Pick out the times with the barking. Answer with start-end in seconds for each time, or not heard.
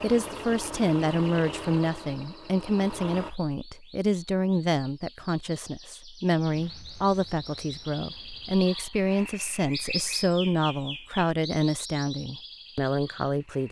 not heard.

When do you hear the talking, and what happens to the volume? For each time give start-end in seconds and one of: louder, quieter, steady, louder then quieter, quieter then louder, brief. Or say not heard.
0.0-13.6 steady.